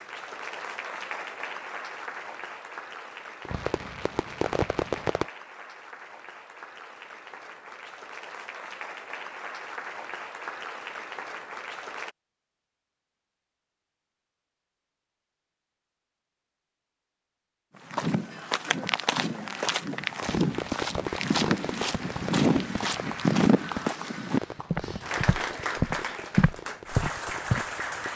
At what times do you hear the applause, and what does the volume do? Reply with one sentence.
You can hear the applause from 0.0 to 12.2 s, getting quieter then louder; and from 21.1 to 28.1 s, getting louder.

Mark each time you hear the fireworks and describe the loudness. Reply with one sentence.
You can hear the fireworks briefly from 3.5 to 5.2 s; and from 20.2 to 28.1 s, getting quieter.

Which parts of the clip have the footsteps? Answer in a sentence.
You can hear the footsteps from 17.9 to 27.6 s.